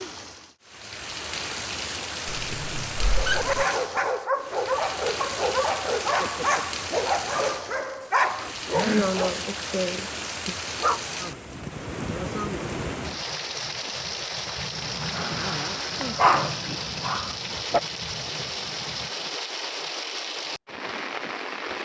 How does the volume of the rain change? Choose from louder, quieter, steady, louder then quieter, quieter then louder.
steady.